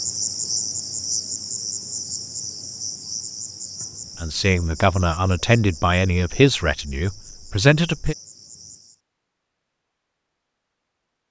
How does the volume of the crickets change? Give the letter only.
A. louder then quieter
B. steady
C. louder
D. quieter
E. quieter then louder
D.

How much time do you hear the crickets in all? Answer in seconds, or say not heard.
9 s.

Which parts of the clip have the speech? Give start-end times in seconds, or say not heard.
4.2-8.2.